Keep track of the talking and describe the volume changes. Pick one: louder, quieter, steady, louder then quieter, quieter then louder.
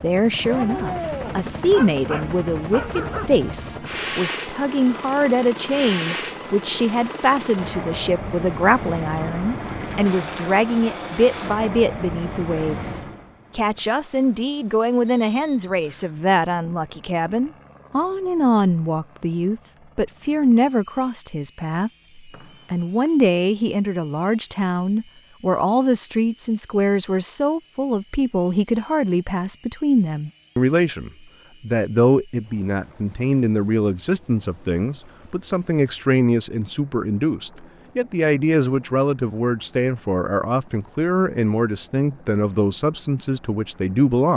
steady.